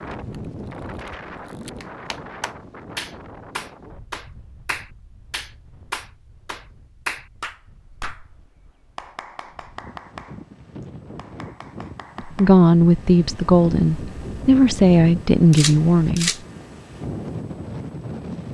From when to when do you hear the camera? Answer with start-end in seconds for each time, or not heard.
0.3-1.9, 15.5-16.4.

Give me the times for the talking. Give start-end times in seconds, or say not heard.
12.2-16.3.